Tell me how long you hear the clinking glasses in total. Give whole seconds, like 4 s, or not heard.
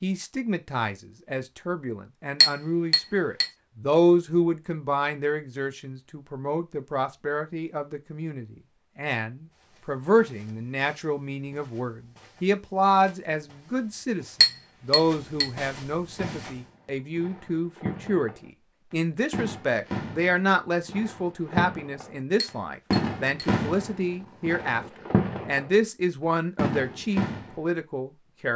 3 s.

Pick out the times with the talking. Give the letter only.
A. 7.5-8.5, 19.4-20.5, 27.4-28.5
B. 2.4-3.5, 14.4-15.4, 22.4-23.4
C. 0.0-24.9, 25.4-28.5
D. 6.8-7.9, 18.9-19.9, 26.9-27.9
C.